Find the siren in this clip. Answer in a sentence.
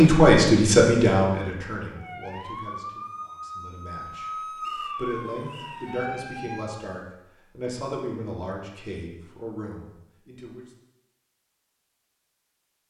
You can hear the siren from 1.9 to 7.0 s.